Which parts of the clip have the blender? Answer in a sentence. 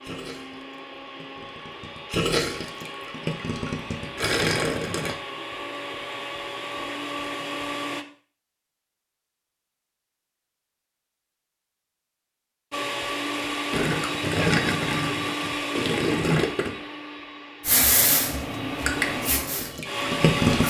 The blender can be heard from 0.0 to 8.1 s and from 12.7 to 20.6 s.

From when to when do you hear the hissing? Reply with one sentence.
You can hear the hissing from 17.6 to 20.6 s.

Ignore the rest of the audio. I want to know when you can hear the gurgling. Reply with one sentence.
The gurgling can be heard from 0.0 to 5.2 s, from 13.7 to 16.7 s and from 18.9 to 20.6 s.